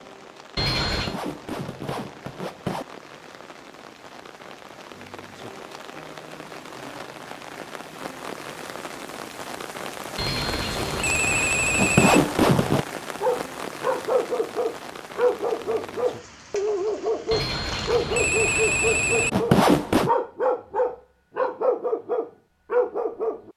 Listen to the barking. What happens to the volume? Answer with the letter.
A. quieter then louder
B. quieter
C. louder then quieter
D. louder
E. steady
E.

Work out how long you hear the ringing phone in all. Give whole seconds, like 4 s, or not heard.
5 s.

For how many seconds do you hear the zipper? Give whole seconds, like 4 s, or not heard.
4 s.